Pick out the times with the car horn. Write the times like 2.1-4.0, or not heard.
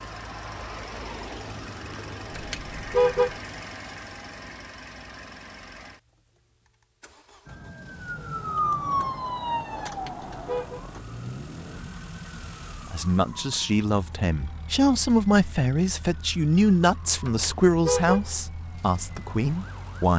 2.3-3.4, 9.8-10.8, 17.2-18.3.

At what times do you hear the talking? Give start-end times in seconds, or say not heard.
12.9-20.1.